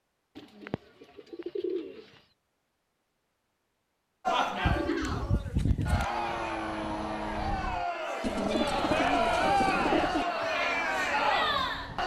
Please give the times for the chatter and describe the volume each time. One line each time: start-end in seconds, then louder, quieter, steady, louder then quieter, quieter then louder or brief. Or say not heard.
4.2-12.0 louder.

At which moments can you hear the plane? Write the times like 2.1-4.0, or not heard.
5.9-7.8, 10.4-12.0.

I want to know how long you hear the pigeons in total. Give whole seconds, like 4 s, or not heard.
5 s.